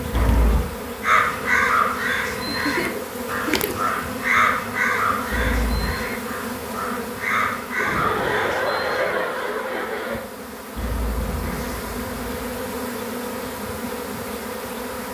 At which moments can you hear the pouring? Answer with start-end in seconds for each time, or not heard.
0.1-0.8, 5.3-6.0, 10.8-12.4.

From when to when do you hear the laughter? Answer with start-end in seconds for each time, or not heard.
2.5-3.9, 7.8-10.2.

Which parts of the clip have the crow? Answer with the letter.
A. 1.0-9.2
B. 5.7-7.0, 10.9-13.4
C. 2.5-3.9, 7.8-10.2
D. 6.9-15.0
A.